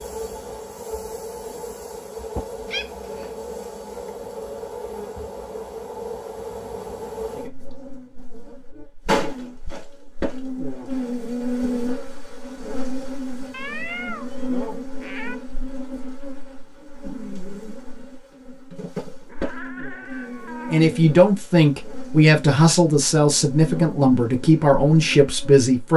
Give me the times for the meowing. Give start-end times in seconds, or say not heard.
2.7-3.3, 13.5-15.3, 19.2-20.8.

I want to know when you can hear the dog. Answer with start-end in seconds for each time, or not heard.
not heard.